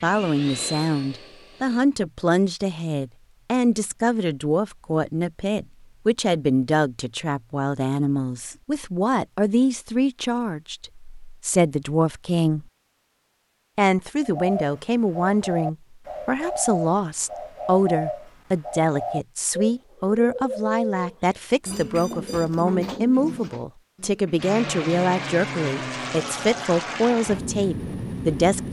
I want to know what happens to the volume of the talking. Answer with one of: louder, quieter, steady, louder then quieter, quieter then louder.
steady.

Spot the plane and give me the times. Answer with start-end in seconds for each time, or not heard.
0.0-1.9, 24.4-28.6.